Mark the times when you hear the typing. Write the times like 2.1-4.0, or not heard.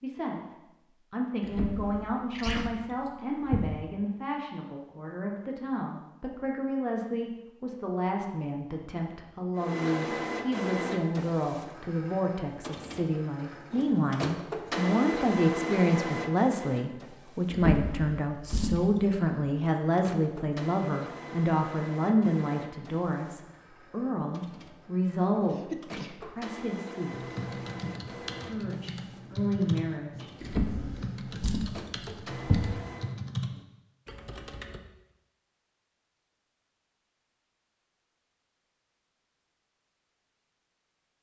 27.1-34.8.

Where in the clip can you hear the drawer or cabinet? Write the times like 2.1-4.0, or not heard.
1.4-3.8, 17.5-19.2, 30.4-32.8.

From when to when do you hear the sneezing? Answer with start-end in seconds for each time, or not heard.
2.3-2.7, 25.5-26.1.